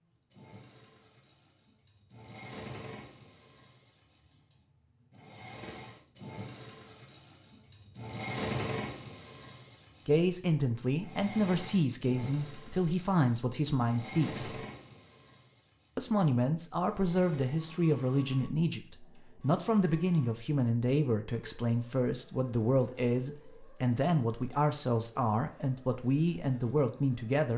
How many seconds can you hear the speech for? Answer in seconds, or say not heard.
16 s.